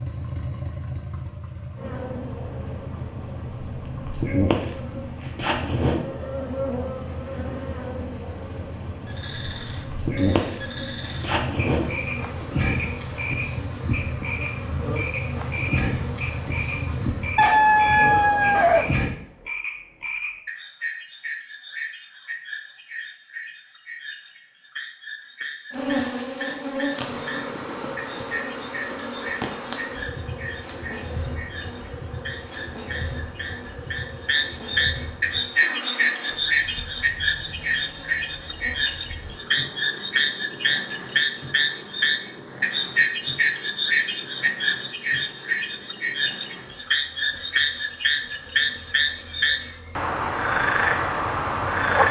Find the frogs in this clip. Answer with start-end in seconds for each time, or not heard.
9.1-52.0.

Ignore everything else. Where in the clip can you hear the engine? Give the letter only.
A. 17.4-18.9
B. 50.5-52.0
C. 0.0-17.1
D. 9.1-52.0
C.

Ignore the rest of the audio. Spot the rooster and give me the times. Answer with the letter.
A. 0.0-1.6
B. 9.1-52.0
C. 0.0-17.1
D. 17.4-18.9
D.